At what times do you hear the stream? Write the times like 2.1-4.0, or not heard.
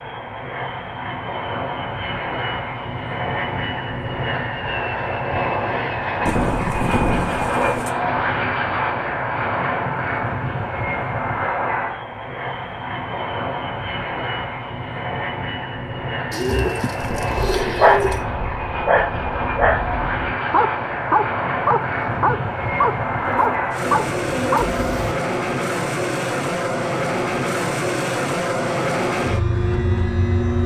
not heard.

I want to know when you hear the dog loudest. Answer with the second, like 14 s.
18 s.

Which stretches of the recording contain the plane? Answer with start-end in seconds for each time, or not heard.
0.0-30.6.